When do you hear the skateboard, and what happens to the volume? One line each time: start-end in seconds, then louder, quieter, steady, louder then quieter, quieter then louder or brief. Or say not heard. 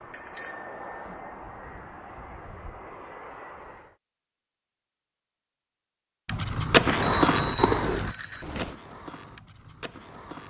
6.2-10.4 quieter.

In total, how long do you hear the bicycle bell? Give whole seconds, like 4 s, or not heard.
3 s.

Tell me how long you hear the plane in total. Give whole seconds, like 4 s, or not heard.
4 s.